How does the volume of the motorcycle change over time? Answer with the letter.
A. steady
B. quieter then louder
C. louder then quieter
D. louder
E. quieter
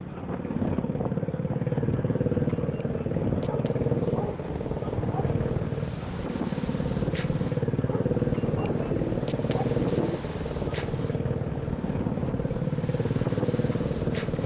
A.